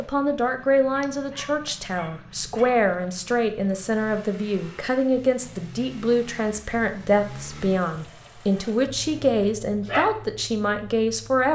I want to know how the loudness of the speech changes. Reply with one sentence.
The loudness of the speech stays about the same.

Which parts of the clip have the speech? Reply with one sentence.
You can hear the speech from 0.0 to 11.5 s.